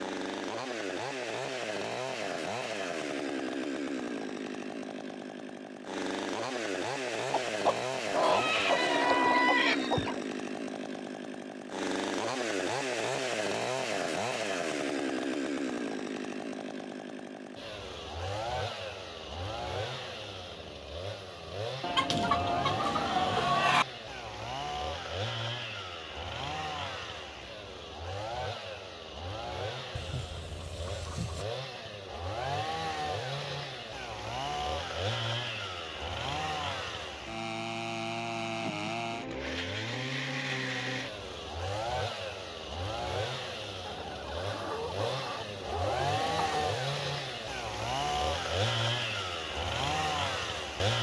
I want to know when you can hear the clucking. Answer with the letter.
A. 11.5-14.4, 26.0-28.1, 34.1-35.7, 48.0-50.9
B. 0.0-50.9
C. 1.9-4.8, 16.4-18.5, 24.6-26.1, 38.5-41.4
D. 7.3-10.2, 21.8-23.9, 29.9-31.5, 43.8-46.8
D.